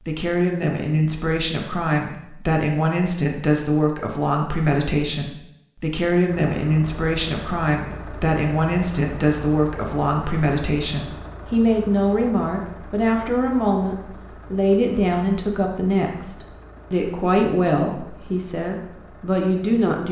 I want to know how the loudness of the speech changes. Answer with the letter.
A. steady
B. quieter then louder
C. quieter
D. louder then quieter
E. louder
A.